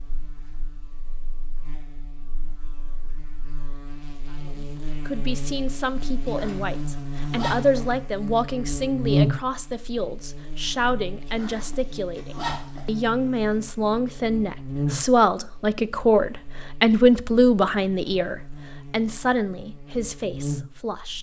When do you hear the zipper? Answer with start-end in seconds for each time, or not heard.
6.2-7.8, 11.2-12.8.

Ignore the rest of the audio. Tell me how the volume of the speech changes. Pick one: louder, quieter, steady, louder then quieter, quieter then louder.
louder then quieter.